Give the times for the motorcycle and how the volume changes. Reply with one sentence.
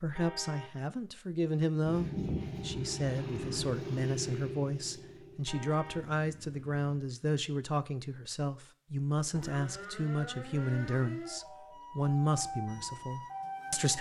You can hear the motorcycle from 1.9 to 7.0 s, getting quieter.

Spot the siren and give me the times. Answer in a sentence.
The siren can be heard from 9.3 to 13.9 s.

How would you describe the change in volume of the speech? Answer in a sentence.
The volume of the speech stays about the same.